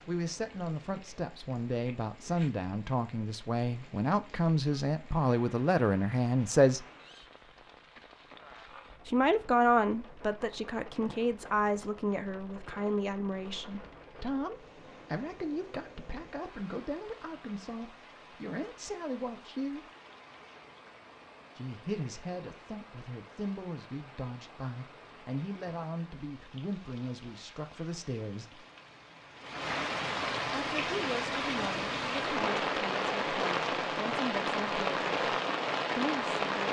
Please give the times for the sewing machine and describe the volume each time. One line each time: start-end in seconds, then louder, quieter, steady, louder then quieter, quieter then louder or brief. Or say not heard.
not heard.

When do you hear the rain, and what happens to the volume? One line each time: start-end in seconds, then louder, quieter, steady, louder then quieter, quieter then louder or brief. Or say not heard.
0.0-36.6 louder.